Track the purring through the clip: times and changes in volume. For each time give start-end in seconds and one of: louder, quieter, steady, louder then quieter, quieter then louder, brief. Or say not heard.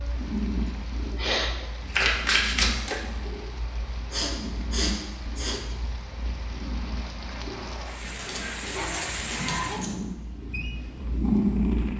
0.0-11.9 quieter then louder.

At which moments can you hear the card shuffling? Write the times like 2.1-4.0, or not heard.
1.9-3.0, 8.0-9.9.